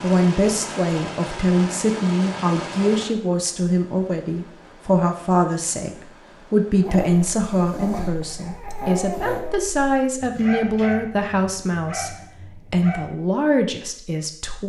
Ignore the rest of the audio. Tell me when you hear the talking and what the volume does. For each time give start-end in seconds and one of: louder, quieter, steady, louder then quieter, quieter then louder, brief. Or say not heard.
0.0-14.6 steady.